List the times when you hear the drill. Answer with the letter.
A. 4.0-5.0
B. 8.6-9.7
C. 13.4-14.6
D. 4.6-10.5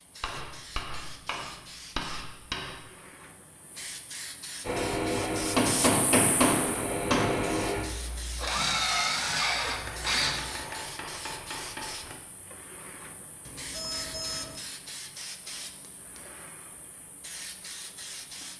D.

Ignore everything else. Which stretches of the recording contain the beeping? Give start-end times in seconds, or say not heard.
13.4-14.6.